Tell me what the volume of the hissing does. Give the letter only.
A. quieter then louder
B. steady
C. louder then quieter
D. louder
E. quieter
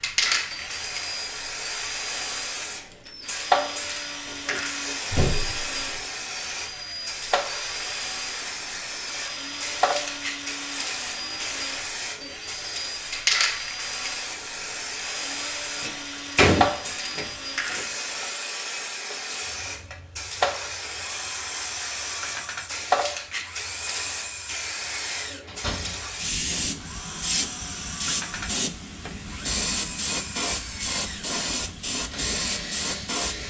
B.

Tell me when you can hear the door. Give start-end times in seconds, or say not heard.
4.2-6.0, 15.8-17.8, 25.4-26.1.